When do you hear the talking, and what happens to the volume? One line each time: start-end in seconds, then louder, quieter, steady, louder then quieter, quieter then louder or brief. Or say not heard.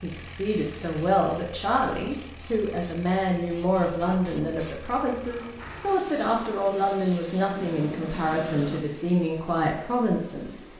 0.0-10.7 steady.